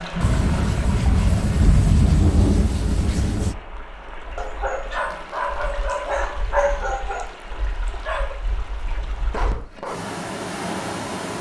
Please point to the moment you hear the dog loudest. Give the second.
7 s.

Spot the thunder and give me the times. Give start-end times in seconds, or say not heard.
0.2-3.5.